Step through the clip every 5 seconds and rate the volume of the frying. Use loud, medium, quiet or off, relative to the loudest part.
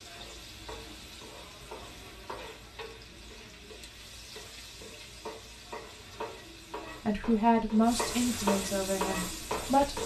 medium, loud.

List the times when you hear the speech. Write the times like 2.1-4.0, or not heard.
7.0-10.0.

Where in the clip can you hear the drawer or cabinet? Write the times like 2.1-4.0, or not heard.
not heard.